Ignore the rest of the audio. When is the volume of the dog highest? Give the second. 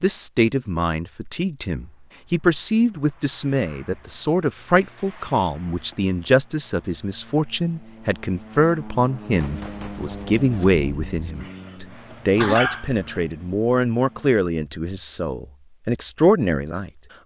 13 s.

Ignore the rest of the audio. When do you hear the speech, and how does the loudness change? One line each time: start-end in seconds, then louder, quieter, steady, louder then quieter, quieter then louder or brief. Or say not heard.
0.0-16.9 steady.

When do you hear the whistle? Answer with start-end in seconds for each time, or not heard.
not heard.